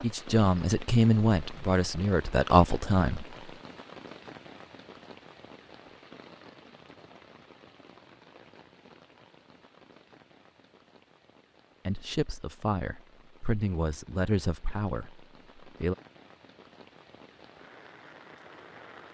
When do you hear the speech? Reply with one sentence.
The speech can be heard from 0.0 to 3.4 s and from 11.8 to 15.9 s.